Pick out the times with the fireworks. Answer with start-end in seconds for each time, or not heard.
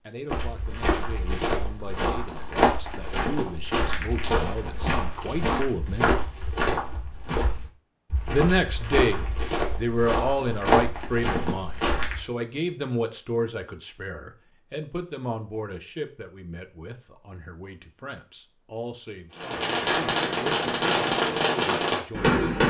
19.4-22.6.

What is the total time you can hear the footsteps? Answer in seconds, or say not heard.
12 s.